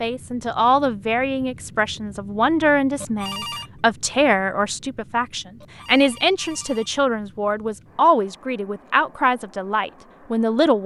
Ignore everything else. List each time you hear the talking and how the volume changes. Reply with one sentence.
The talking can be heard from 0.0 to 10.8 s, at a steady volume.